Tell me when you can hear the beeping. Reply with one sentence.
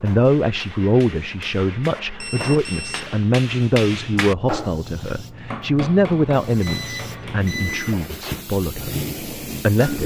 You can hear the beeping from 2.1 to 3.1 s and from 6.6 to 8.0 s.